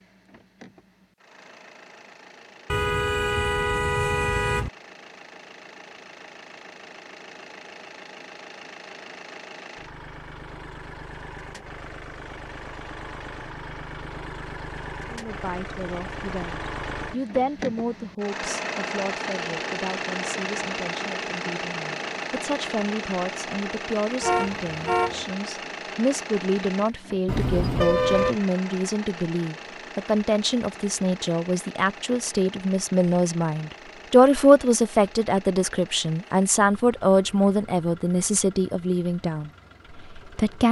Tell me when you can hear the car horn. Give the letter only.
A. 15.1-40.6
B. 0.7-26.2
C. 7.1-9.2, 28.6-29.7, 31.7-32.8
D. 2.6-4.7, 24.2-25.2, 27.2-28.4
D.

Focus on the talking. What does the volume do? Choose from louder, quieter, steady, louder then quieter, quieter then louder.
louder.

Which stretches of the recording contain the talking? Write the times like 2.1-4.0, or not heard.
15.1-40.6.